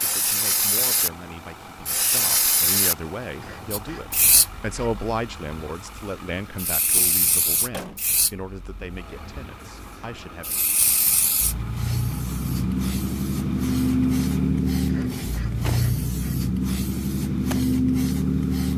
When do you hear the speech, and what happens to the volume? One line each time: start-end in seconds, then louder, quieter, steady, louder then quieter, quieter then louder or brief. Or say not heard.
0.0-10.5 louder then quieter.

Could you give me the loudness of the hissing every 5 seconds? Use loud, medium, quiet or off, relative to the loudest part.
loud, medium, loud, loud.